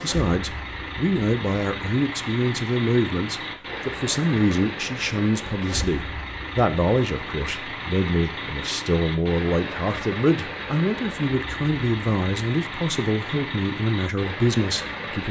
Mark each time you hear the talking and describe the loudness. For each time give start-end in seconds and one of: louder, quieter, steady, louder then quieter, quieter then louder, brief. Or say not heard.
0.0-15.2 steady.